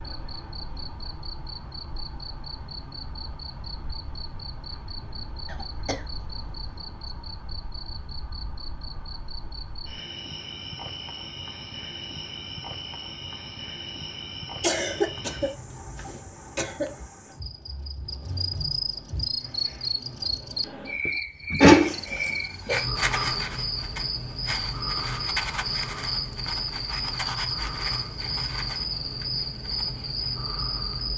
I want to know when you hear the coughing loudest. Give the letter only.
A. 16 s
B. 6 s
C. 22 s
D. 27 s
C.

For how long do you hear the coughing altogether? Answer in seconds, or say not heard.
5 s.